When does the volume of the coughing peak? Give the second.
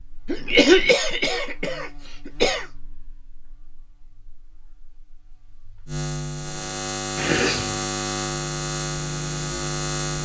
1 s.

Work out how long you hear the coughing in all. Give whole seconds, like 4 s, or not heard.
3 s.